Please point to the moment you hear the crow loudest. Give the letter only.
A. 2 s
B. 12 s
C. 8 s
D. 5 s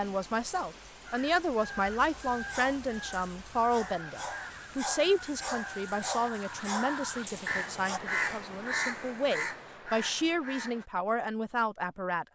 C.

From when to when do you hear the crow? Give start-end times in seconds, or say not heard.
1.1-10.8.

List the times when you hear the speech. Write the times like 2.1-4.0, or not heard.
0.0-12.2.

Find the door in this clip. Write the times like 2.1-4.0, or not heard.
not heard.